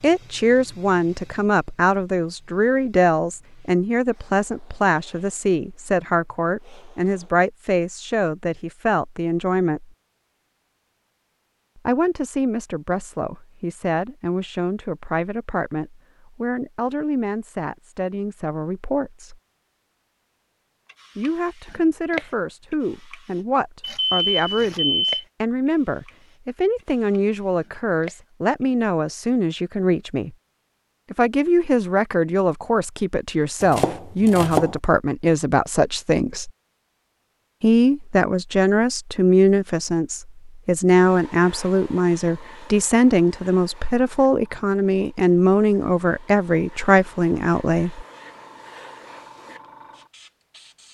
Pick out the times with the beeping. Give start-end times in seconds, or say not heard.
23.8-25.2.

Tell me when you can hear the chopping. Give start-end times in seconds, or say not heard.
33.6-34.8.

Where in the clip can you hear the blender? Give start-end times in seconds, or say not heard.
not heard.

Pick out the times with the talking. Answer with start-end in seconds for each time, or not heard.
0.0-9.9, 11.8-19.4, 21.1-30.4, 31.1-36.5, 37.6-48.0.